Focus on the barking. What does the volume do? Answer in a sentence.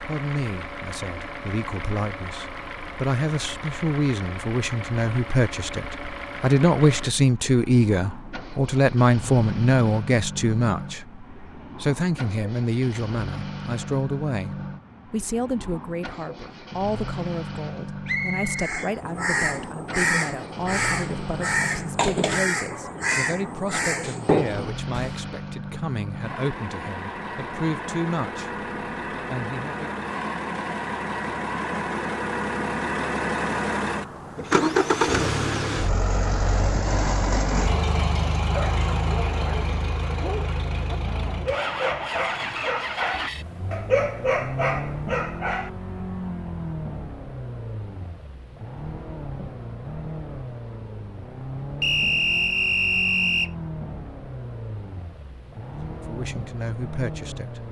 The loudness of the barking goes up.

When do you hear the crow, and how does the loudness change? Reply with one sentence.
The crow can be heard from 18.6 to 25.2 s, at a steady volume.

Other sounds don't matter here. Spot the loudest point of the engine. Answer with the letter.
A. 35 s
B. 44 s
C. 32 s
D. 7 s
A.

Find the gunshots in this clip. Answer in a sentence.
You can't hear the gunshots here.